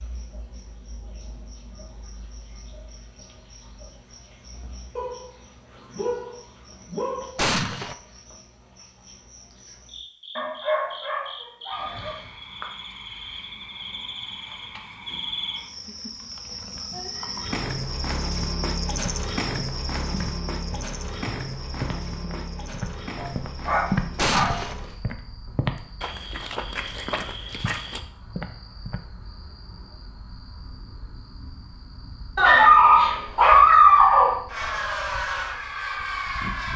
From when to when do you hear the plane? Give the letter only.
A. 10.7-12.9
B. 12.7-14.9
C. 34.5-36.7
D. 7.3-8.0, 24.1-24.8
C.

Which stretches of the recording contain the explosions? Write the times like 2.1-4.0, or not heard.
7.3-8.0, 24.1-24.8.